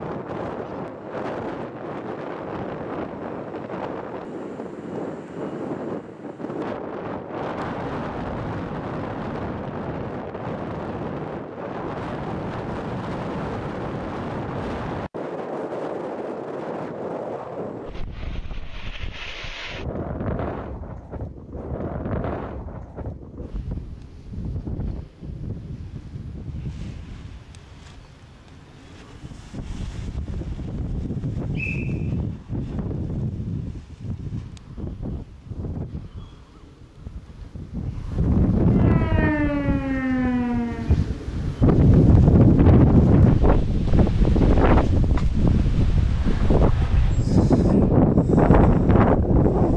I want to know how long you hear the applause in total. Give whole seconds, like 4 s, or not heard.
not heard.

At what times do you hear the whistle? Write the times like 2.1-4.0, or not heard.
31.6-32.1.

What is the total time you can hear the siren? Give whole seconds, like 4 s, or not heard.
2 s.